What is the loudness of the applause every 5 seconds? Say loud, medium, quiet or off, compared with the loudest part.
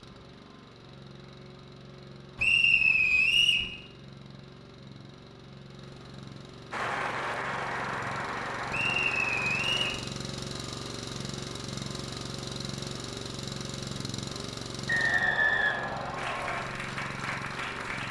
off, loud, off, loud.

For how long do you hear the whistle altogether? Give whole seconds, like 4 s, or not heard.
4 s.